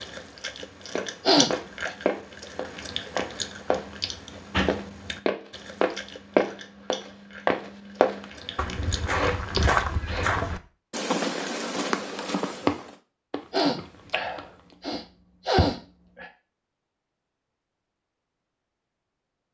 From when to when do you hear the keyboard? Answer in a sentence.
You can't hear the keyboard here.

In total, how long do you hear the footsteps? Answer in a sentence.
The footsteps can be heard for 12 seconds in total.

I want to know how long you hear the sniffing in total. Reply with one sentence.
You can hear the sniffing for 5 seconds altogether.